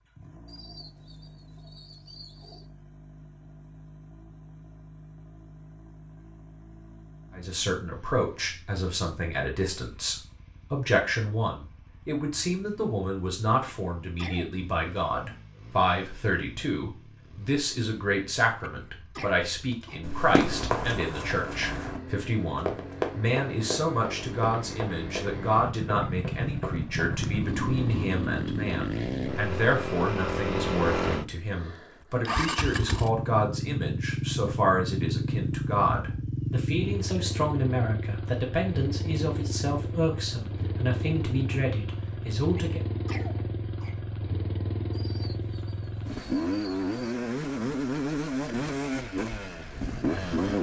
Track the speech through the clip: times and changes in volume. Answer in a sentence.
The speech can be heard from 7.3 to 42.8 s, at a steady volume.